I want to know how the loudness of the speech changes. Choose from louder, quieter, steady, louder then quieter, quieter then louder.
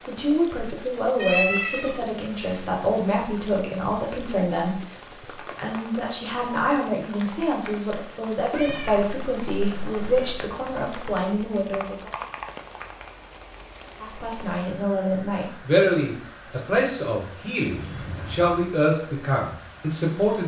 steady.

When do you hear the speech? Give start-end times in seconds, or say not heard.
0.1-4.8, 5.5-12.1, 14.0-20.4.